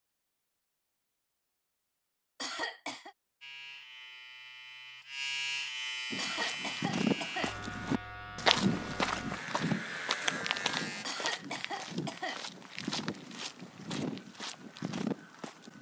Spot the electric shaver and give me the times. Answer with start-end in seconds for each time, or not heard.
3.4-11.1.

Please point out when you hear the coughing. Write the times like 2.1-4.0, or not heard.
2.4-3.1, 6.2-7.5, 11.1-12.4.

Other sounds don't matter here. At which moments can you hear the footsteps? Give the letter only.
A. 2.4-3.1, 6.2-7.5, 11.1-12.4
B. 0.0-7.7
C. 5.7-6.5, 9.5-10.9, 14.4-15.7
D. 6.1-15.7
D.